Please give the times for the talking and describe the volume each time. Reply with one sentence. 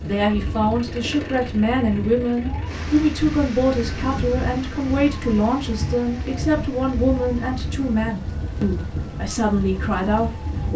The talking can be heard from 0.0 to 10.7 s, at a steady volume.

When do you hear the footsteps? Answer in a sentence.
You can't hear the footsteps here.